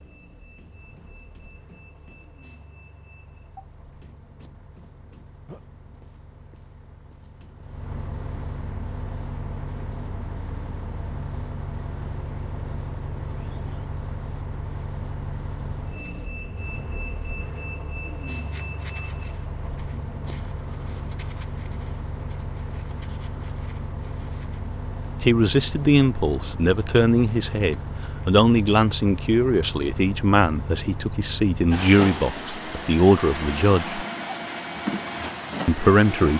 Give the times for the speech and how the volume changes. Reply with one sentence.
The speech can be heard from 25.2 to 34.0 s, at a steady volume; and briefly from 35.6 to 36.3 s.